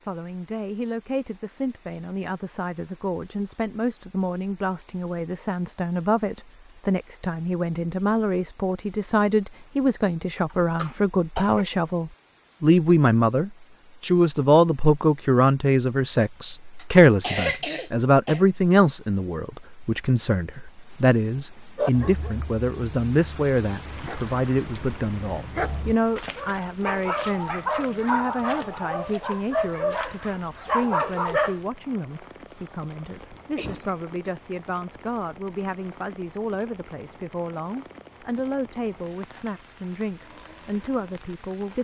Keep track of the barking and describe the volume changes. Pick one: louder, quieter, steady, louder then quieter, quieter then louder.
louder.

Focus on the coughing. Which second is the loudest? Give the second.
17 s.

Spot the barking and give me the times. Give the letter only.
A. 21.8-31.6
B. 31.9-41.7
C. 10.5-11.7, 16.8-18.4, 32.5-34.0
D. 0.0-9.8
A.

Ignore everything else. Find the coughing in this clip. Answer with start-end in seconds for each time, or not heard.
10.5-11.7, 16.8-18.4, 32.5-34.0.